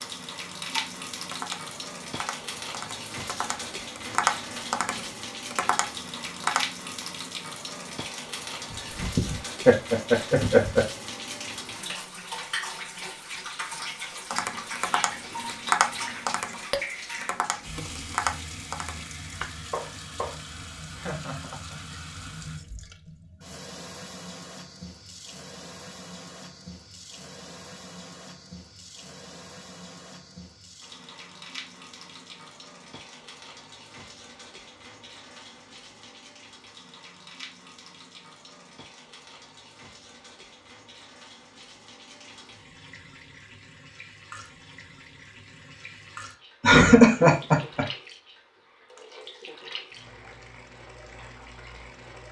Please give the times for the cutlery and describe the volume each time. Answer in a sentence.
You can't hear the cutlery here.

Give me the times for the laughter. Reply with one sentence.
The laughter can be heard from 8.7 to 10.8 s, from 20.9 to 22.0 s and from 46.6 to 47.9 s.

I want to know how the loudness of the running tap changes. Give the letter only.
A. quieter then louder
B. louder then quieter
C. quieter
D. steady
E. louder
C.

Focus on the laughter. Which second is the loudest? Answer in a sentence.
The loudest moment of the laughter is at 47 seconds.